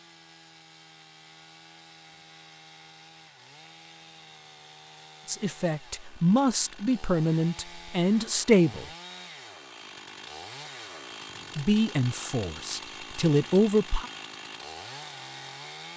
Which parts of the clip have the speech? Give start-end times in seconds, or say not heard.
5.2-8.8, 11.5-14.1.